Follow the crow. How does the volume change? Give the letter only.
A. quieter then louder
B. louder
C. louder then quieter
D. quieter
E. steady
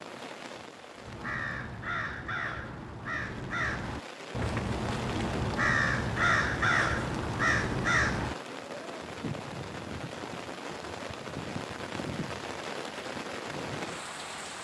B.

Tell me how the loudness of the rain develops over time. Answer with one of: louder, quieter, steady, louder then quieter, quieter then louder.
louder.